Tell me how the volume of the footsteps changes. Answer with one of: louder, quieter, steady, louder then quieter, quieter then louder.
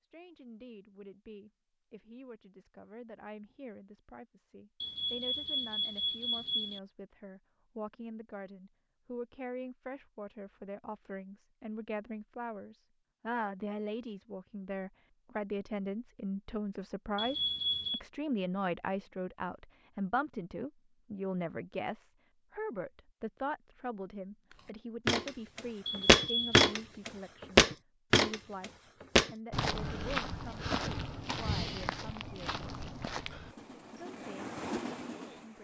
quieter.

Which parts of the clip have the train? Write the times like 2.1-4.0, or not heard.
33.5-35.5.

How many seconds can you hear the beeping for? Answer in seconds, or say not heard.
4 s.